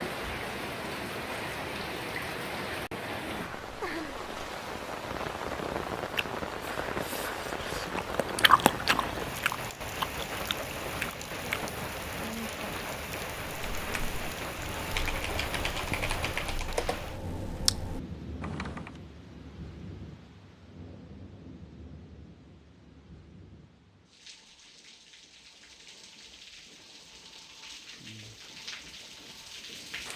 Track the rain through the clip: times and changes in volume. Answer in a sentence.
The rain can be heard from 0.0 to 30.1 s, getting quieter.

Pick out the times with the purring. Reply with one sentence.
You can't hear the purring here.